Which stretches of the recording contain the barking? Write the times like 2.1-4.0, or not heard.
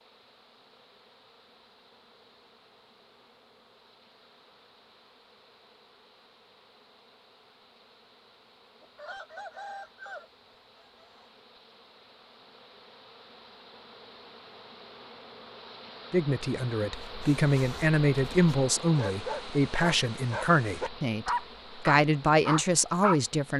16.9-23.2.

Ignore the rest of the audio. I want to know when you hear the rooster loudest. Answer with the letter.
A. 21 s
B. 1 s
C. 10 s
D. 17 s
C.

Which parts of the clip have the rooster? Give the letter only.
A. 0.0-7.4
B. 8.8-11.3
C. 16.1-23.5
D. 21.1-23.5
B.